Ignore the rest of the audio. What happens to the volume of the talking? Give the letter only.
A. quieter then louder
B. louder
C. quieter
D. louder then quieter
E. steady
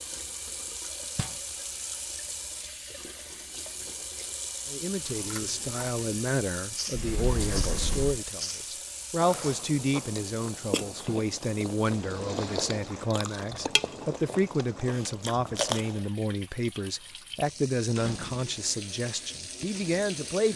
E.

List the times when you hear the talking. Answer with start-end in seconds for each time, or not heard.
4.7-20.5.